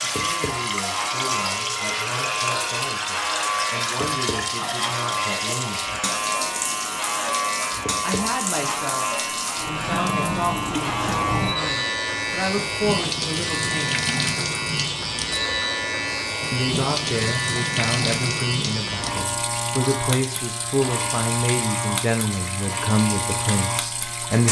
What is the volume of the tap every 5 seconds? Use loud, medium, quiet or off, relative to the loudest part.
loud, loud, loud, loud, medium.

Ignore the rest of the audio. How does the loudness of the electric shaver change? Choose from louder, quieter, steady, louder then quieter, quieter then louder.
steady.